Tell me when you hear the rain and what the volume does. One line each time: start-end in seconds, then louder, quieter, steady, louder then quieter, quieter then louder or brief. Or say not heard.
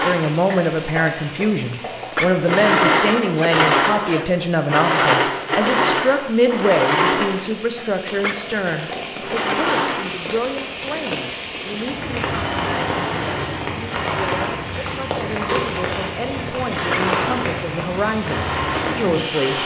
0.0-19.6 louder.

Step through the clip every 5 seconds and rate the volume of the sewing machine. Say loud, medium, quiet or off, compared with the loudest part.
loud, loud, medium, medium.